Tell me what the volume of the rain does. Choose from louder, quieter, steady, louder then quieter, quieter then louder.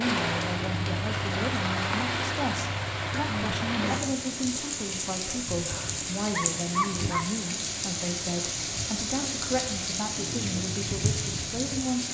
steady.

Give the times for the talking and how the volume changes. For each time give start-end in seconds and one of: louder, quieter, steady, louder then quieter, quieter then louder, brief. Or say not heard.
0.0-12.1 steady.